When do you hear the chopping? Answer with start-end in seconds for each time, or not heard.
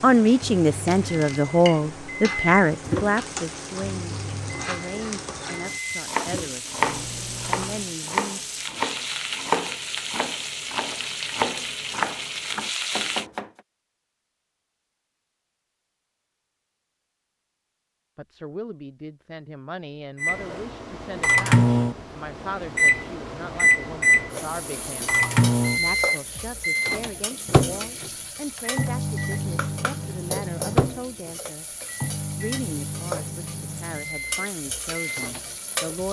6.0-13.5.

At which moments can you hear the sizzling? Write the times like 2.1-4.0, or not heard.
0.0-13.2, 24.3-36.0.